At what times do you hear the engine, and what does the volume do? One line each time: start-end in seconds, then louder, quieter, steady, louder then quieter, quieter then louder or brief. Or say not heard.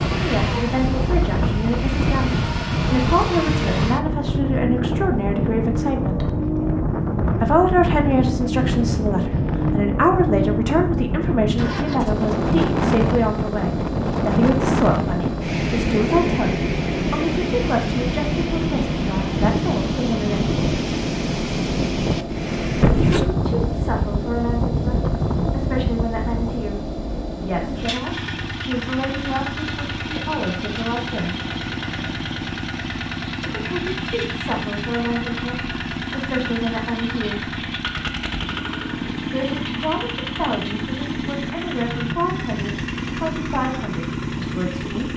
0.0-45.1 steady.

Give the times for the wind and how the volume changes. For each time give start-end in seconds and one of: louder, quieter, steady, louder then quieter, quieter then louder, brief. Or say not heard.
0.0-26.8 steady.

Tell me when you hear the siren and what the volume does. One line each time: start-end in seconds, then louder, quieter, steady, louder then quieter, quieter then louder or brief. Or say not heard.
not heard.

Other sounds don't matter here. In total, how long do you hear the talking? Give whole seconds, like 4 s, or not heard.
38 s.